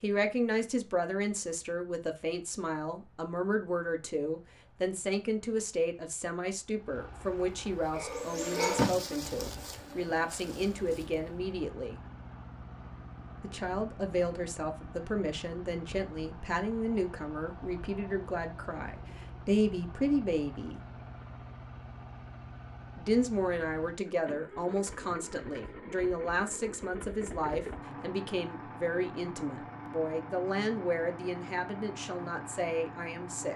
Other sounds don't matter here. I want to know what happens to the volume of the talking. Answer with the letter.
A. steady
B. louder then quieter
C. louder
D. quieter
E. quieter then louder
A.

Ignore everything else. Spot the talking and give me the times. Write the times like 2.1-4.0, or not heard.
0.0-12.0, 13.4-20.8, 22.9-33.5.